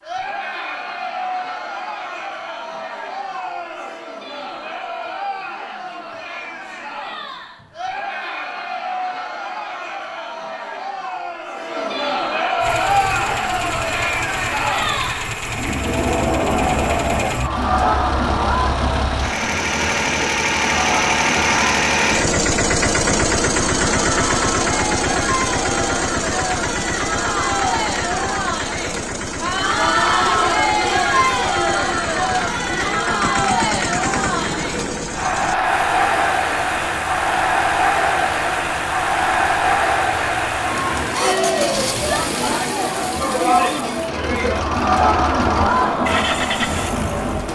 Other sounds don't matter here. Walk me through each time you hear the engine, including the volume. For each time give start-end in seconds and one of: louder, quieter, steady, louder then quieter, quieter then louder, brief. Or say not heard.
12.6-47.5 louder then quieter.